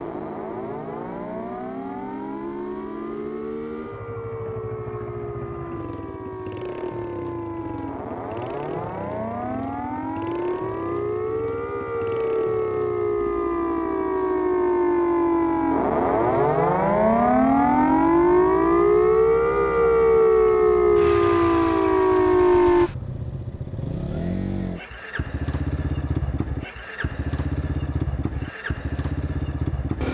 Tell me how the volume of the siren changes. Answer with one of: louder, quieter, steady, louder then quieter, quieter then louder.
louder.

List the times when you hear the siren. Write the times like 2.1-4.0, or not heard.
0.0-22.9.